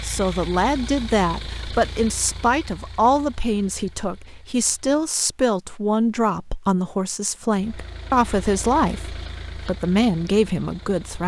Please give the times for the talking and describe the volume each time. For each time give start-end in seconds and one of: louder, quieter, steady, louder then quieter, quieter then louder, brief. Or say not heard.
0.0-11.2 steady.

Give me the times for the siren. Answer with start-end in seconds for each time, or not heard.
not heard.